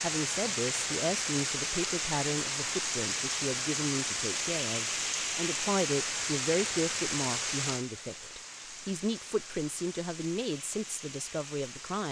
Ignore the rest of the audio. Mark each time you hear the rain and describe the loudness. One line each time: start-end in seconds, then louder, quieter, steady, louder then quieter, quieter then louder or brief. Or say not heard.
0.0-12.0 quieter.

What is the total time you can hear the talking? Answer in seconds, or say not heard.
12 s.